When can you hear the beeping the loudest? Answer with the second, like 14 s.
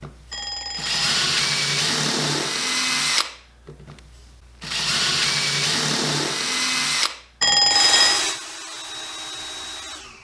8 s.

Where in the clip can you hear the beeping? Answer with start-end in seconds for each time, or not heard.
0.3-1.2, 7.4-8.2.